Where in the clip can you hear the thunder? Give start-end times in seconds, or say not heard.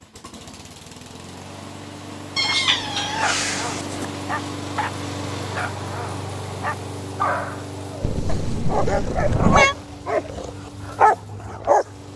not heard.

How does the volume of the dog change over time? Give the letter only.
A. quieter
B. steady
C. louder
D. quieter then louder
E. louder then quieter
C.